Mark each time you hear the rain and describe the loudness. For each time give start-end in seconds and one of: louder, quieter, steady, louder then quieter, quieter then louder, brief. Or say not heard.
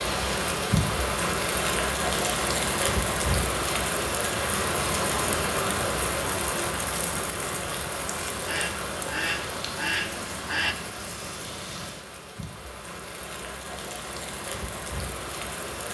0.0-15.8 quieter.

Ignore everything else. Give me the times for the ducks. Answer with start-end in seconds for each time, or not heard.
8.4-10.8.